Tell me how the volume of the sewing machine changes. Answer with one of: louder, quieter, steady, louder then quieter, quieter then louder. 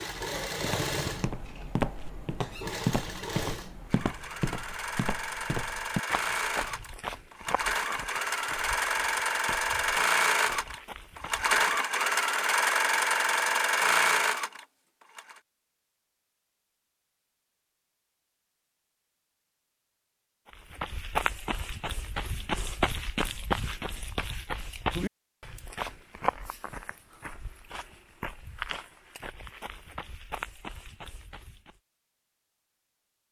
louder.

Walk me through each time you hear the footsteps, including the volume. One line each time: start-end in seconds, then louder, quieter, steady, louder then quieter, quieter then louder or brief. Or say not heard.
0.6-11.5 quieter
20.4-31.8 quieter.